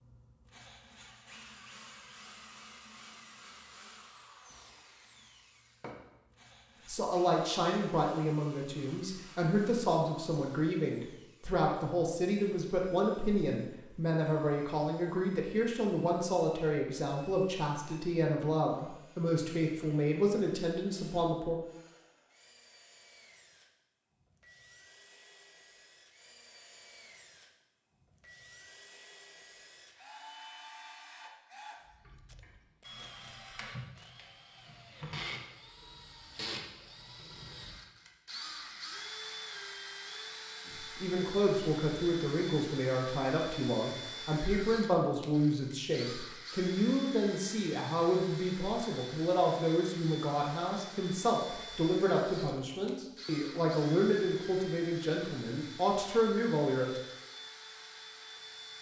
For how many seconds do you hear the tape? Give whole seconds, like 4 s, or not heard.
2 s.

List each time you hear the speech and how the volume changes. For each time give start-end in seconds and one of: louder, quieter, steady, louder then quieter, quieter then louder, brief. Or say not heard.
6.8-21.6 steady
40.6-57.0 steady.